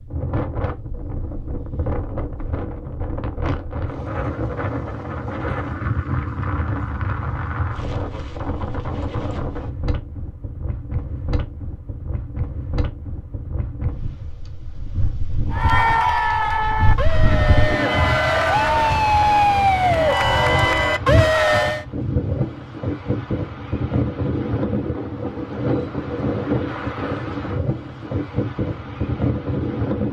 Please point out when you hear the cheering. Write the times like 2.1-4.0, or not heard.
15.5-21.9.